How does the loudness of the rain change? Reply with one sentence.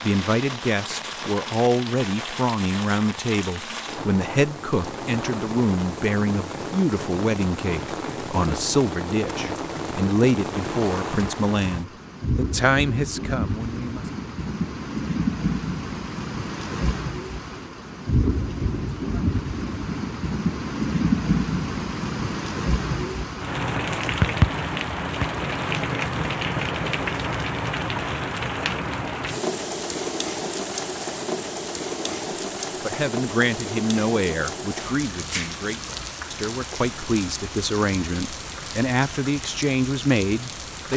The loudness of the rain goes up, then down.